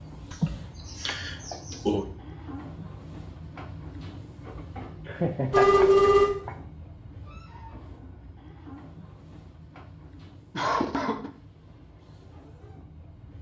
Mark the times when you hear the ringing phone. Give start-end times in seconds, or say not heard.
5.5-6.3.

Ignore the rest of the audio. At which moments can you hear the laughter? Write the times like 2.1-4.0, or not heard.
0.3-2.0, 5.0-6.5, 10.6-11.3.